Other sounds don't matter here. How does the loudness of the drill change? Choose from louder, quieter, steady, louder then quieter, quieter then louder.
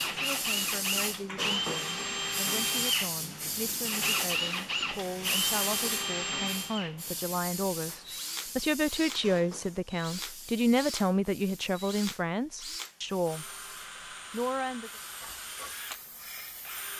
quieter.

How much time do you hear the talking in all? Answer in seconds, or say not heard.
14 s.